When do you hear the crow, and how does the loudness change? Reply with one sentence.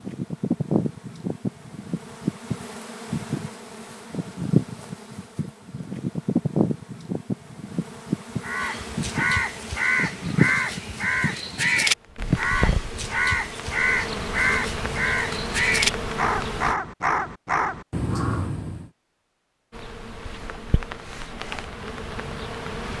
You can hear the crow from 8.4 to 18.9 s, at a steady volume.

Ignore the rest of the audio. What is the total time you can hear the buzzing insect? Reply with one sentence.
The buzzing insect can be heard for 20 seconds in total.